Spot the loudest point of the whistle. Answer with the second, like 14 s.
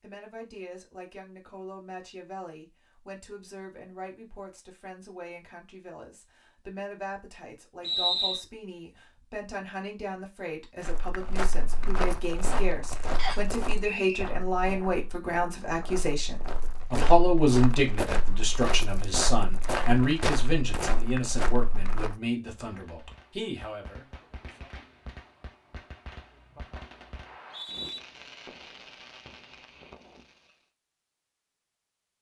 8 s.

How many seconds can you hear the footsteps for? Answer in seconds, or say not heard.
11 s.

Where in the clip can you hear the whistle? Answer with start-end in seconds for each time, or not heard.
7.8-8.4, 13.2-14.2, 27.2-28.0.